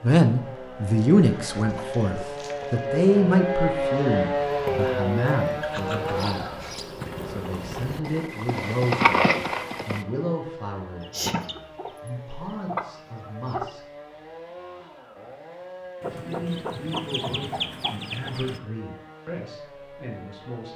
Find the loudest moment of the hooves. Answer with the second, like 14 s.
9 s.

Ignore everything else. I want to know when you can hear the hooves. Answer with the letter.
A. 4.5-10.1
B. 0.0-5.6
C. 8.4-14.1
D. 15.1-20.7
A.